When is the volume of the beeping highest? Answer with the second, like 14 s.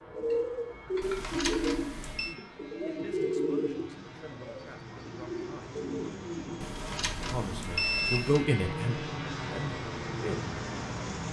8 s.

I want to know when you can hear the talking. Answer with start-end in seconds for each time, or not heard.
2.2-5.8, 7.1-10.6.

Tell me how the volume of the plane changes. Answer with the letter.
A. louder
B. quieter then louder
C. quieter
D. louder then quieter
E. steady
A.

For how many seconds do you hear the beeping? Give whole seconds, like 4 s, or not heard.
3 s.